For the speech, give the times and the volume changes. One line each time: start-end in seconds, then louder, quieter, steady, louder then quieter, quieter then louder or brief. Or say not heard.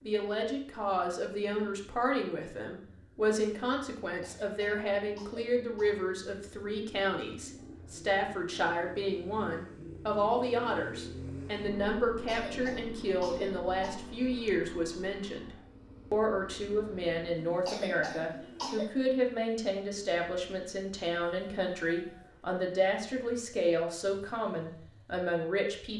0.1-25.9 steady.